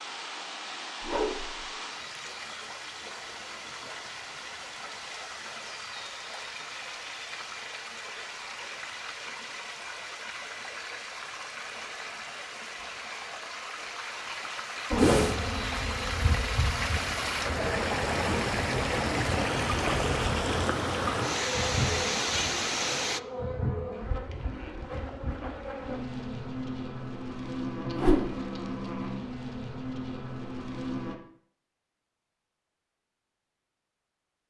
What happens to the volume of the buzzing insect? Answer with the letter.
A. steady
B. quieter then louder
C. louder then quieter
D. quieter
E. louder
A.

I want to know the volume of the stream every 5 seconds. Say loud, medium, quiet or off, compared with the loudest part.
medium, medium, medium, loud, loud, off, off.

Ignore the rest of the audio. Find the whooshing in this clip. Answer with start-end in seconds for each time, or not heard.
1.0-1.6, 14.9-15.3, 27.9-28.3.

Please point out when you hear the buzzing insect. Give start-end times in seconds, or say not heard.
14.9-31.1.